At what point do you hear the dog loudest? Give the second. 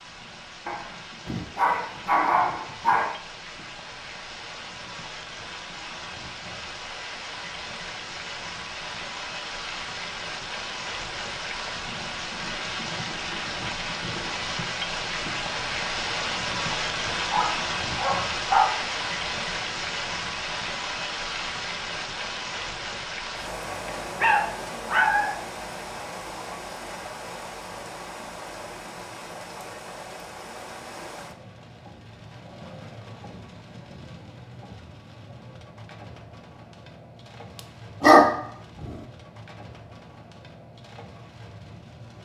38 s.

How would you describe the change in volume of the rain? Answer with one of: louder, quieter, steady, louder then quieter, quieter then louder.
louder then quieter.